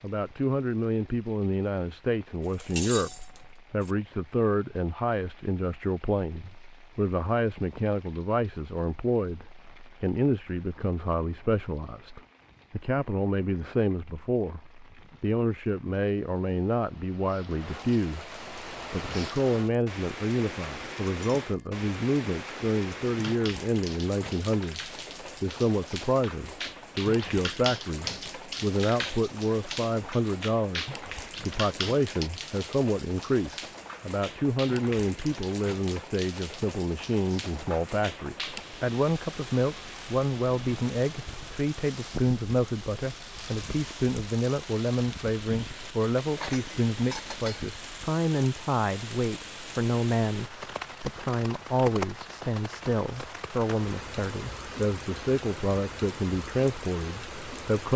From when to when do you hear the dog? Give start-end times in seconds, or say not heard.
not heard.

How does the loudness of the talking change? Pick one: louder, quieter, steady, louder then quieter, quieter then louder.
steady.